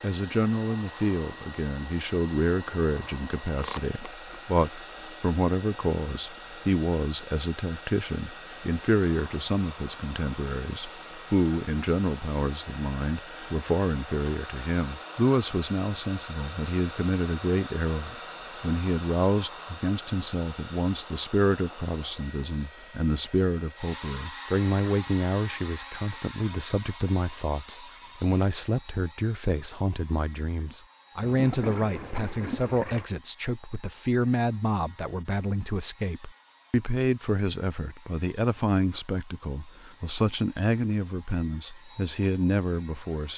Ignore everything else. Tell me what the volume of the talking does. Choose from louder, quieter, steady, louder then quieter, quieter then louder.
steady.